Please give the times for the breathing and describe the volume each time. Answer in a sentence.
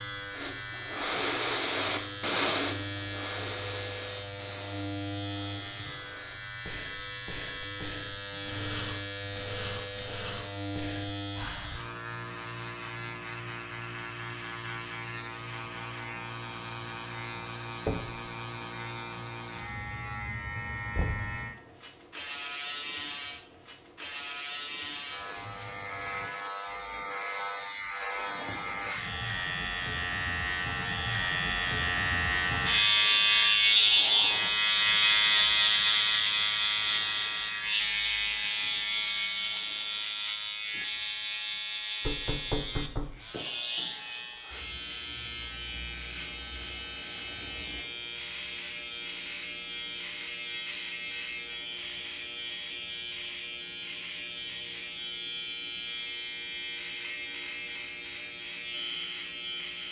You can hear the breathing from 0.3 to 11.8 s, getting quieter.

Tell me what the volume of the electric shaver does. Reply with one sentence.
The volume of the electric shaver goes up, then down.